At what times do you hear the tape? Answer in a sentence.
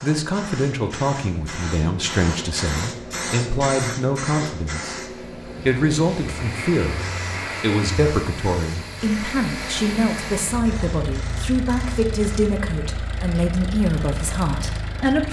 The tape can't be heard in this clip.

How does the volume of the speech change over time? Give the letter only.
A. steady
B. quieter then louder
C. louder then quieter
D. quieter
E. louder
A.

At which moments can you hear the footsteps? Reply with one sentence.
You can't hear the footsteps here.